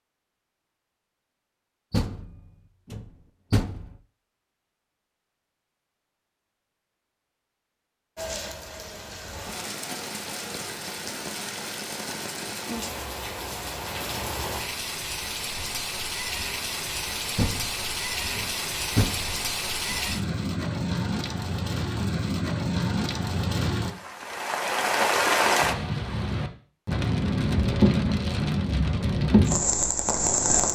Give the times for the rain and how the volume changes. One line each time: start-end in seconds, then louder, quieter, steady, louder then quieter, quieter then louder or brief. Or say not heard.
8.2-30.7 louder.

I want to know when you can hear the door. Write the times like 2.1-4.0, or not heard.
1.9-4.0, 17.4-20.0.